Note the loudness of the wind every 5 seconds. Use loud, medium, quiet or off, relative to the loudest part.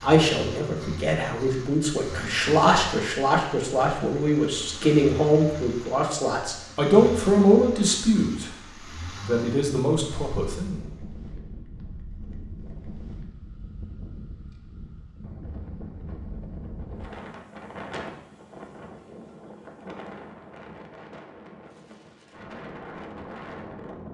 off, off, loud, loud, loud.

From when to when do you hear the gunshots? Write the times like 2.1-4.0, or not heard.
not heard.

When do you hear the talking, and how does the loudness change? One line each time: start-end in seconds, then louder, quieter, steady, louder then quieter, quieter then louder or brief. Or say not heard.
0.0-8.5 louder
9.2-10.8 brief.